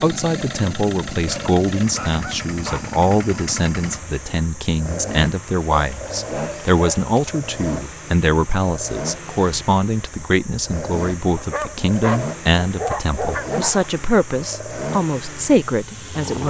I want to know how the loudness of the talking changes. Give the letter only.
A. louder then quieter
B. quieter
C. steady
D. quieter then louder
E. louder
C.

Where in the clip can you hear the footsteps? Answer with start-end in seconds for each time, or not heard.
not heard.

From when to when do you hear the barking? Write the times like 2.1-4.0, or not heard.
1.2-3.0, 5.7-7.3, 11.3-13.8.